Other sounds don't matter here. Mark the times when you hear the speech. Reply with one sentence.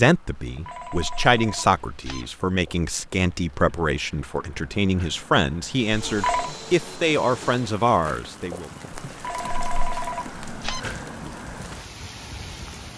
You can hear the speech from 0.0 to 8.7 s.